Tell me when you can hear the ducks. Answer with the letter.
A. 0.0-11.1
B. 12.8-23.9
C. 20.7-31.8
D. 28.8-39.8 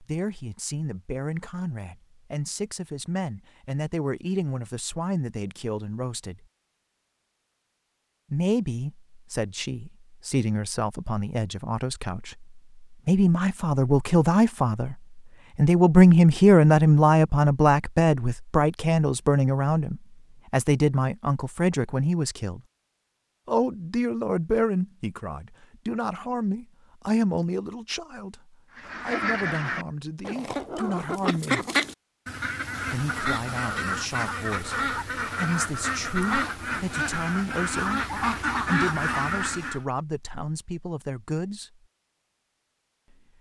D.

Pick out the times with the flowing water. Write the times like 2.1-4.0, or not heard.
not heard.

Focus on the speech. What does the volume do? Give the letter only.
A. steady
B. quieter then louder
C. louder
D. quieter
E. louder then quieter
E.